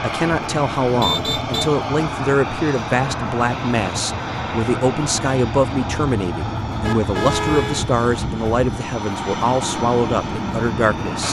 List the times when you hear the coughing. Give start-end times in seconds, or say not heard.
not heard.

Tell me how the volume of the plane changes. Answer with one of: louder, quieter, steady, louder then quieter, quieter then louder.
steady.